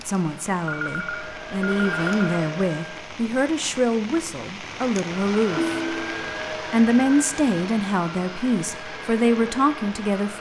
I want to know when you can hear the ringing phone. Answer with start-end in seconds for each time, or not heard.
0.7-2.1, 5.5-6.3.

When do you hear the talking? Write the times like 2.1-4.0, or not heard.
0.1-5.8, 6.7-10.3.